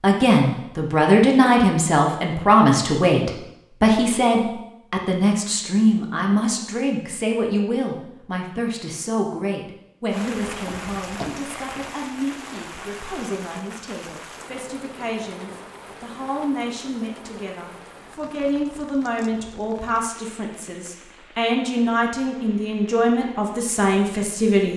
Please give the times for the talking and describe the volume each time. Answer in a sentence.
You can hear the talking from 0.0 to 24.7 s, getting quieter then louder.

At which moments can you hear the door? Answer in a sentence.
You can hear the door from 10.4 to 11.8 s.